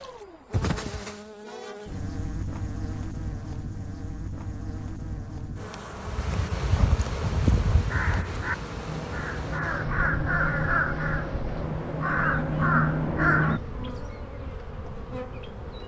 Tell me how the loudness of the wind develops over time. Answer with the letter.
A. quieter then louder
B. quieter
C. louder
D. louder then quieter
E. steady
B.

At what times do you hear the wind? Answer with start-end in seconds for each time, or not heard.
5.9-15.8.